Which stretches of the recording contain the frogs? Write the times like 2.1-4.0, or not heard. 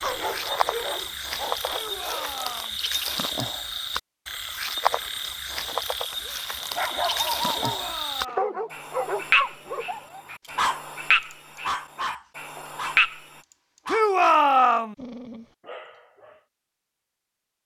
0.0-13.4.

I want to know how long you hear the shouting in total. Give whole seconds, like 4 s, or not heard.
3 s.